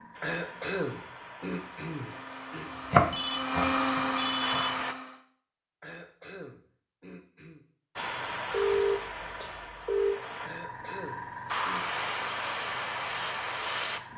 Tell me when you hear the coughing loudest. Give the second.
1 s.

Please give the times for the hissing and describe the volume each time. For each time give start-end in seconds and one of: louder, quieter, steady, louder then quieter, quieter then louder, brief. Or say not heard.
0.0-5.0 louder
8.0-14.1 quieter then louder.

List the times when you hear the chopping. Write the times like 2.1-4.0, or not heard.
2.9-4.6.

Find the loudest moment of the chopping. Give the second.
3 s.